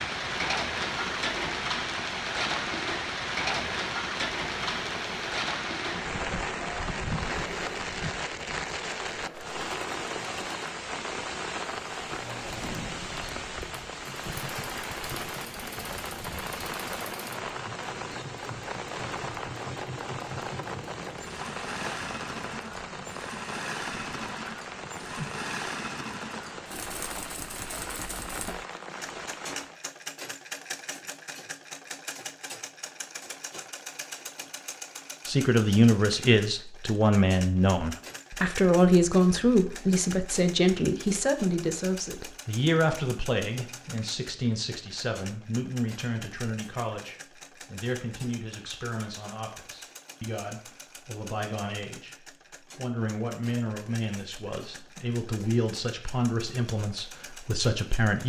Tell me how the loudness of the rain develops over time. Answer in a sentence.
The loudness of the rain goes down.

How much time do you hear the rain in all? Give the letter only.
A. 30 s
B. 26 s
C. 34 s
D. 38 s
A.